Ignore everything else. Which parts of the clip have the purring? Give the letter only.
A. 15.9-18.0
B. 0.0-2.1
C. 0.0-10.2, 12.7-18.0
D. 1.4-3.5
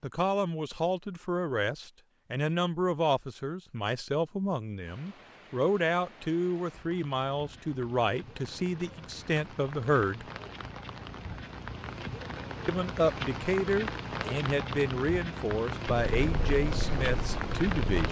A.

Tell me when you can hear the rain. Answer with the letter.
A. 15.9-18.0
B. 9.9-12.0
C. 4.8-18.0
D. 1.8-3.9
C.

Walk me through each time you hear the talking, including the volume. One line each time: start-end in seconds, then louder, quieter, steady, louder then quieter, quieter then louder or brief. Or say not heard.
0.0-10.2 steady
12.7-18.0 quieter.